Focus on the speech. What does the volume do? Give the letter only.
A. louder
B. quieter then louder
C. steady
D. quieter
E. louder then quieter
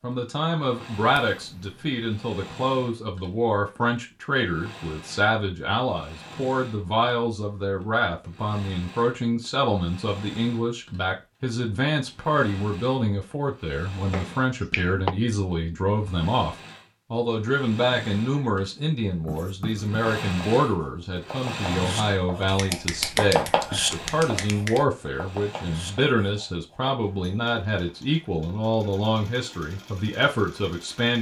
C.